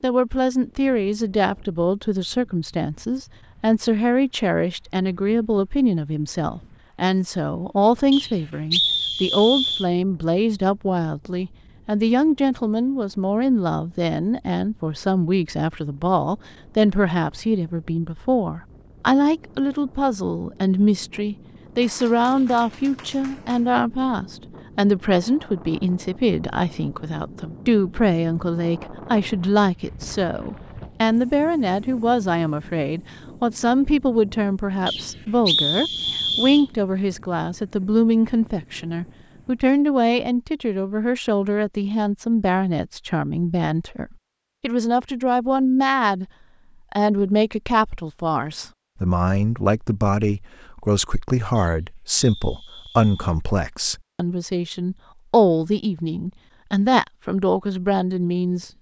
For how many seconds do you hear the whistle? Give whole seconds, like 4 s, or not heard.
5 s.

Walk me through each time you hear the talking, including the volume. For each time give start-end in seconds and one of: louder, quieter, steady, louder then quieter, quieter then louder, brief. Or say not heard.
0.0-46.2 steady
46.9-58.7 steady.